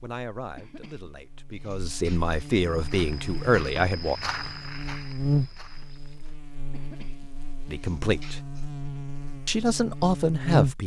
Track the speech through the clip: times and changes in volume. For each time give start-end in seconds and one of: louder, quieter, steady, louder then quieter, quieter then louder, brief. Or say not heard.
0.0-4.2 louder
7.7-8.4 brief
9.4-10.8 brief.